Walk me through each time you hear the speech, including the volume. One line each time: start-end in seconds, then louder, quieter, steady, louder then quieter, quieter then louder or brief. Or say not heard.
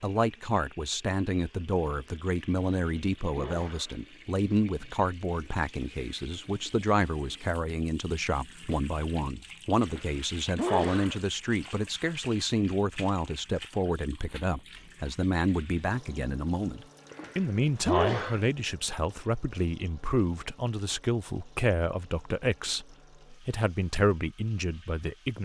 0.0-25.3 steady.